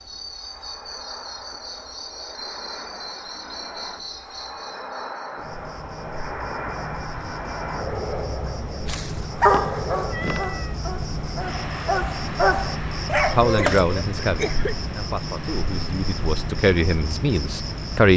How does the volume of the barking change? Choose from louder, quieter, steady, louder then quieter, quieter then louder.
quieter then louder.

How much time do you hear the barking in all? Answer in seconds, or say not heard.
5 s.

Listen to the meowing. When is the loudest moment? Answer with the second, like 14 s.
10 s.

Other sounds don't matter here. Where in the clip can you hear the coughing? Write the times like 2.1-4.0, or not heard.
13.6-14.8.